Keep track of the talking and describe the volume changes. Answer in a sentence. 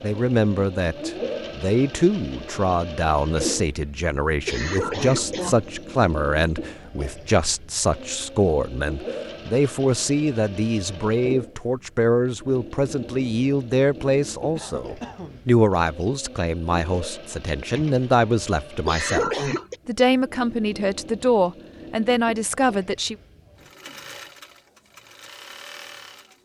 The loudness of the talking stays about the same.